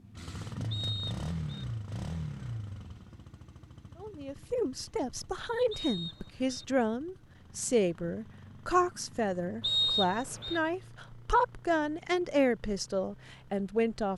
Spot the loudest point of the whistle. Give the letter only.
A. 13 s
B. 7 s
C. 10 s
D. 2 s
C.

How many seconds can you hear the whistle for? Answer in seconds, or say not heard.
3 s.